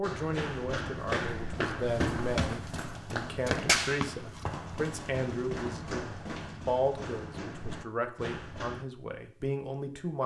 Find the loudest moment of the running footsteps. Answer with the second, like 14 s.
4 s.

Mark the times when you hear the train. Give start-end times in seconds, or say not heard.
not heard.